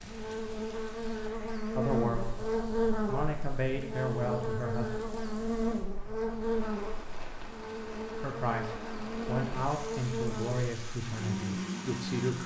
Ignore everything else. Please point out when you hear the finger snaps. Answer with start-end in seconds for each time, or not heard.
not heard.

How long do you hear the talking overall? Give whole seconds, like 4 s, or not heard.
7 s.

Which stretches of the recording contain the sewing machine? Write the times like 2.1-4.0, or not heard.
not heard.